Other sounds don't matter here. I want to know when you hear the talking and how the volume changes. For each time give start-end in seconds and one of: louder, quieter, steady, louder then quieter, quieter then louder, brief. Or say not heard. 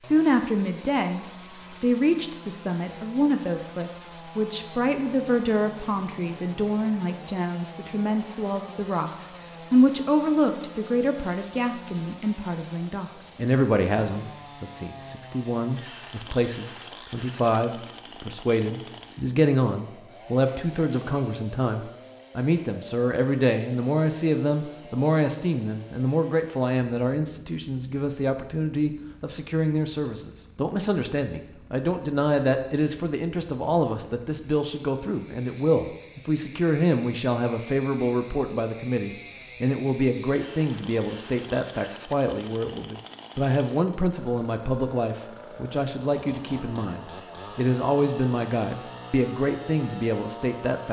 0.0-50.8 steady.